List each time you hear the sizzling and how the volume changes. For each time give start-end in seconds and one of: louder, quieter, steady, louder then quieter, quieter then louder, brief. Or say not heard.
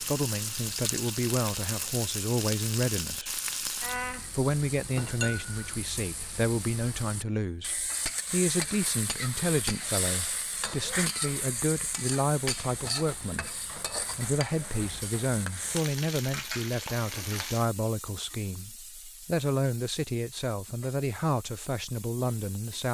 0.0-22.8 quieter.